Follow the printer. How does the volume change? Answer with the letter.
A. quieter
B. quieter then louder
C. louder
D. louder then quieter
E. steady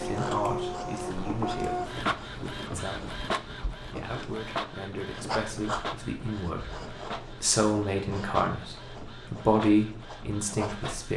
A.